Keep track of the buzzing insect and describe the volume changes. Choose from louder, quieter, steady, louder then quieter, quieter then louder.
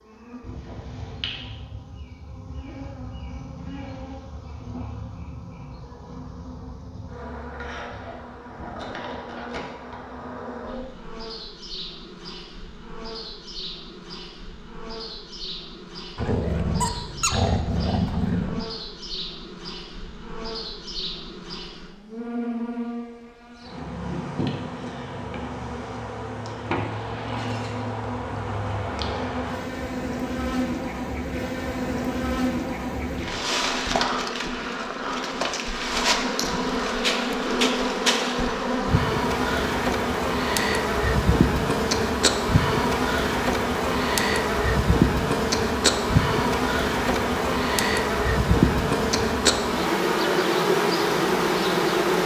louder.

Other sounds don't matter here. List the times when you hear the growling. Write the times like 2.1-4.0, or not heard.
16.1-18.6.